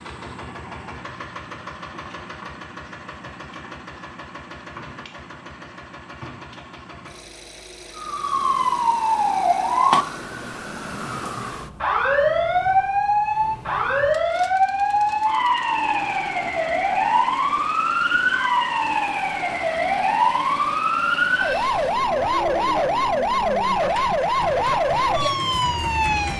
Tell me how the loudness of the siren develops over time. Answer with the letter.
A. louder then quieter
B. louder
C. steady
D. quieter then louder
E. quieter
C.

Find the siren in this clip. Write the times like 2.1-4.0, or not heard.
8.0-26.3.